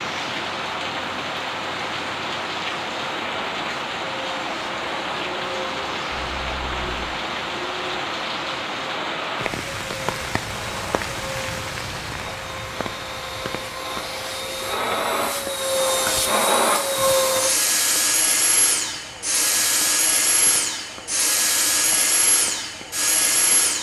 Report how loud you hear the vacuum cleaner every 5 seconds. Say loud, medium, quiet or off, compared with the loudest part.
quiet, quiet, medium, loud, loud.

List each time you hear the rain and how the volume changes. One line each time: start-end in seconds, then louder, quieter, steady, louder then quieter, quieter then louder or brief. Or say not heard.
0.0-23.7 quieter.